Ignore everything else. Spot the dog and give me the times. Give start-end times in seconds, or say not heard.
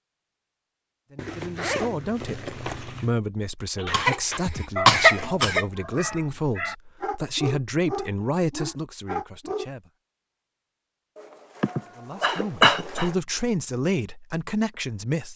3.8-9.7.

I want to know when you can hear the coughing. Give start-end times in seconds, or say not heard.
3.9-5.7, 11.6-13.1.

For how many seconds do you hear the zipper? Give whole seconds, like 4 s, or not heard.
4 s.